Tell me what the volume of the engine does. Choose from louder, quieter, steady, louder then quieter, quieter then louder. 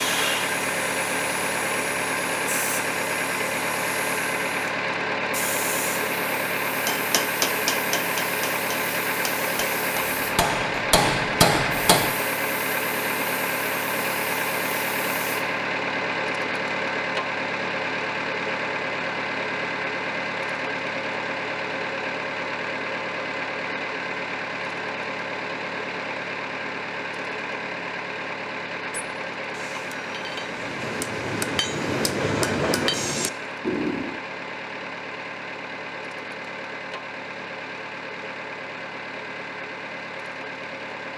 quieter.